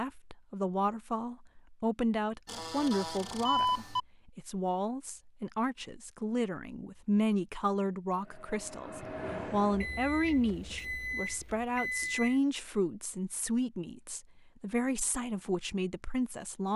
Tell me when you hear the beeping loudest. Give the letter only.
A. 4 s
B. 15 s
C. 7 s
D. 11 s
A.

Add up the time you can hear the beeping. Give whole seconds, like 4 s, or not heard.
4 s.